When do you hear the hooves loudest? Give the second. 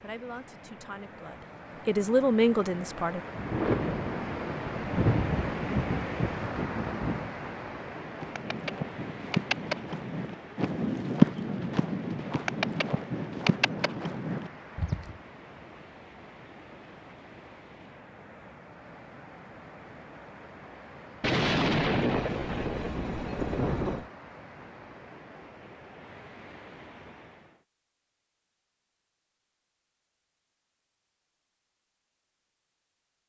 11 s.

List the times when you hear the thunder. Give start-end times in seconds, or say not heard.
3.4-7.3, 21.2-24.1.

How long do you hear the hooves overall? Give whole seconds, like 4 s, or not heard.
7 s.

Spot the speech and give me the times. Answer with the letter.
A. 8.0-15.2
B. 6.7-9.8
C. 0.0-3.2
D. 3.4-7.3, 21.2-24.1
C.